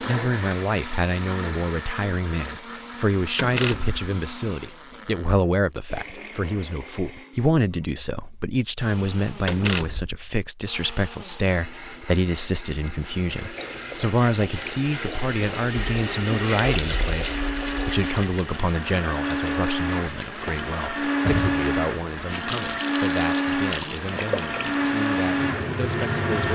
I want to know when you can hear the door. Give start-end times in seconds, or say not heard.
3.4-4.0, 9.4-10.2, 20.4-21.6.